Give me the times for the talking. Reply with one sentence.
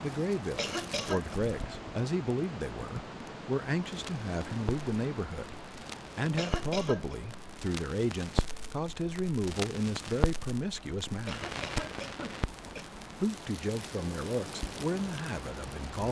You can hear the talking from 0.0 to 5.5 s, from 6.2 to 11.5 s and from 12.7 to 16.0 s.